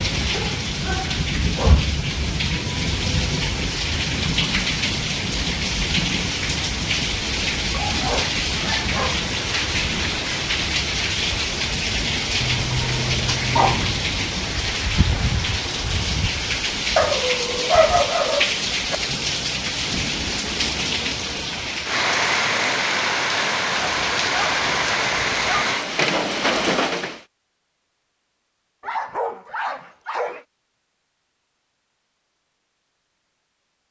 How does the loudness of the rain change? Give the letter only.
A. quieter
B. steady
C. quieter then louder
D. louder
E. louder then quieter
B.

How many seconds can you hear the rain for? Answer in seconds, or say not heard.
27 s.